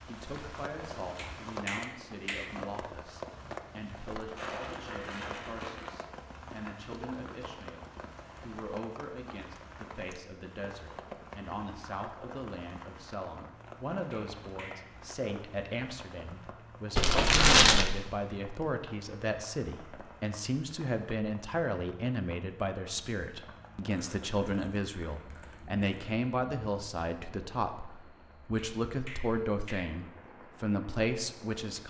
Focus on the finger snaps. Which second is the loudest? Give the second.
2 s.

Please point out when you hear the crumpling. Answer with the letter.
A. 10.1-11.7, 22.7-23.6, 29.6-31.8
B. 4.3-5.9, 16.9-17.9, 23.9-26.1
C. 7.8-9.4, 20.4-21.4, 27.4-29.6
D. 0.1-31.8
B.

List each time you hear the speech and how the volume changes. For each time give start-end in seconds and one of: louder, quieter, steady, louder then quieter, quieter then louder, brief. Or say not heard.
0.1-31.8 louder.